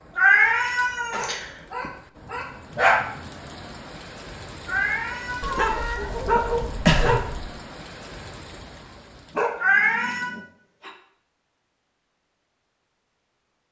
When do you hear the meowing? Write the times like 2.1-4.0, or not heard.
0.1-1.9, 4.7-5.7, 9.6-10.3.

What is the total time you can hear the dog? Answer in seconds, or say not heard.
6 s.